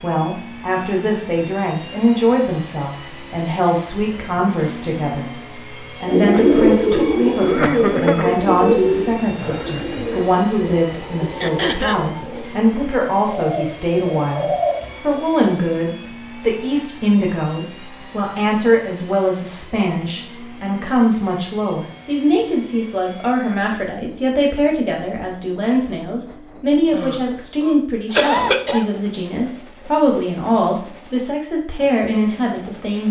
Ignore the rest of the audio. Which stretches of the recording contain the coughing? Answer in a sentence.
The coughing can be heard from 6.2 to 8.3 s, from 11.4 to 12.0 s and from 26.9 to 28.9 s.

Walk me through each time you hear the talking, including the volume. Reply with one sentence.
The talking can be heard from 0.0 to 33.0 s, at a steady volume.